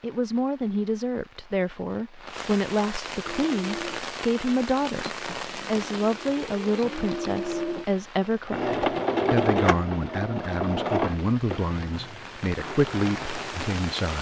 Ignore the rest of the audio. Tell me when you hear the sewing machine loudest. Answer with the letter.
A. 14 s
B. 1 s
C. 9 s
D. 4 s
C.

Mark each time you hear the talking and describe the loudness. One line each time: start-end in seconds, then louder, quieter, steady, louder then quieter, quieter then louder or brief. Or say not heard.
0.0-14.1 steady.